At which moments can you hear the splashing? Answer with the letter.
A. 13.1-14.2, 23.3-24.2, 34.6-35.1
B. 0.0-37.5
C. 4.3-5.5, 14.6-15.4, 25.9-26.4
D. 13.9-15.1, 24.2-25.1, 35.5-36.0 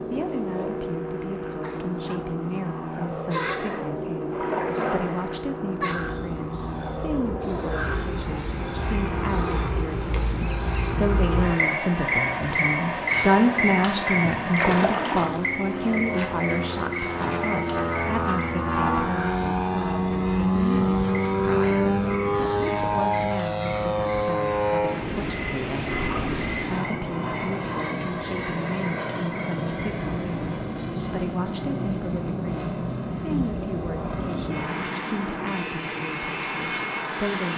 C.